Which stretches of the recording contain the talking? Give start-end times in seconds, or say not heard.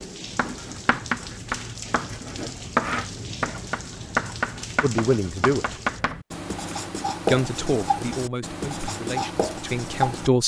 4.8-5.8, 7.2-10.4.